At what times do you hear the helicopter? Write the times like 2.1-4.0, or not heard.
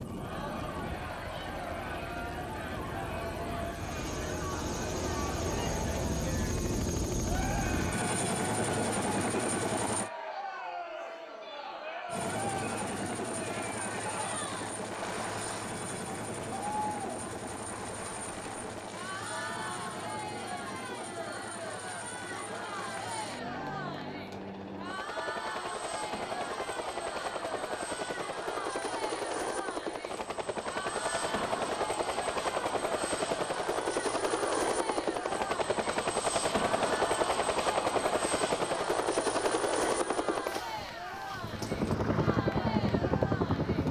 0.0-10.1, 12.1-43.8.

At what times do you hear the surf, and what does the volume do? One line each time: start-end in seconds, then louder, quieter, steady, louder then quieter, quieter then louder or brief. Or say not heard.
not heard.